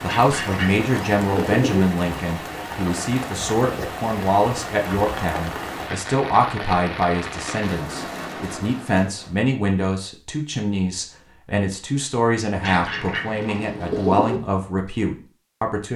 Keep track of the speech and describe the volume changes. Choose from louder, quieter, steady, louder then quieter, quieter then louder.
steady.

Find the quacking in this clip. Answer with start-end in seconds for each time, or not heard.
0.1-1.9, 12.6-14.4.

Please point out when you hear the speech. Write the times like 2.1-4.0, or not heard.
0.0-15.9.